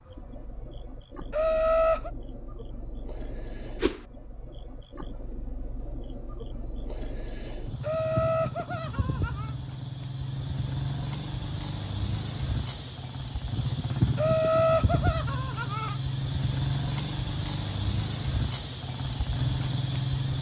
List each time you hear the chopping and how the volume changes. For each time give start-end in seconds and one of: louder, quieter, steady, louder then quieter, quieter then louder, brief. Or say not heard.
not heard.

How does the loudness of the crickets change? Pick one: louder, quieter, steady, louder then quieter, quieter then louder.
louder.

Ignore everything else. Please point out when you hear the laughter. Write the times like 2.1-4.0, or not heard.
1.3-2.1, 7.8-9.6, 14.2-15.9.